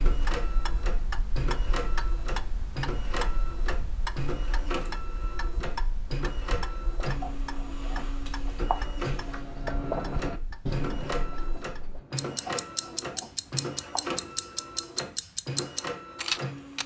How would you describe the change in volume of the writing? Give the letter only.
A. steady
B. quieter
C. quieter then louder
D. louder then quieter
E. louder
D.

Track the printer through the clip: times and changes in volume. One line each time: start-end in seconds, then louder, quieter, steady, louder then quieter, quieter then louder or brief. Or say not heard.
0.0-16.8 steady.